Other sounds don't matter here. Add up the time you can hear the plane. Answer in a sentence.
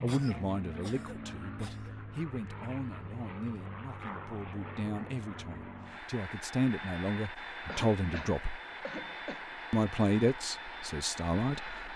The plane can be heard for 12 seconds in total.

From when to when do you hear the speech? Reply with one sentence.
The speech can be heard from 0.0 to 8.6 s and from 9.7 to 11.9 s.